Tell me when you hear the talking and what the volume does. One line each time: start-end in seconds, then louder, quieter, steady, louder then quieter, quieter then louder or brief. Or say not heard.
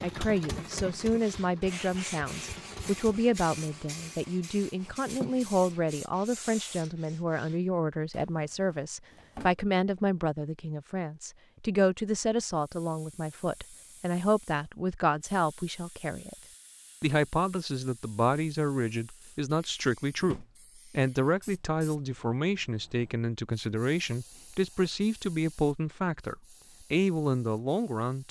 0.0-16.4 steady
17.0-28.2 steady.